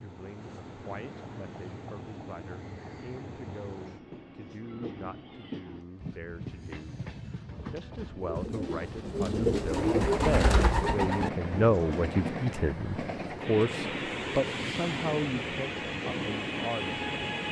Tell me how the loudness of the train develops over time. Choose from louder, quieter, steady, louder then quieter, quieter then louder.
louder.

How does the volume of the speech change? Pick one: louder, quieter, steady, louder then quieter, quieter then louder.
louder.